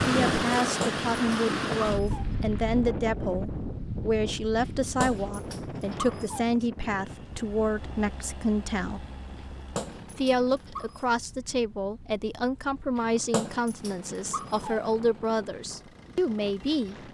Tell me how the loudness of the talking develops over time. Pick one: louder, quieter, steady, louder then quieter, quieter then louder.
steady.